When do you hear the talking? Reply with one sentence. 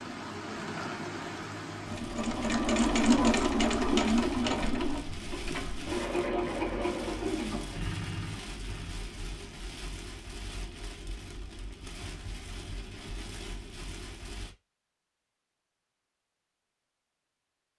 You can't hear the talking here.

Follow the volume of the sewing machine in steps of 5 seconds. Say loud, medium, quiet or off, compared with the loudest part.
loud, medium, off, off.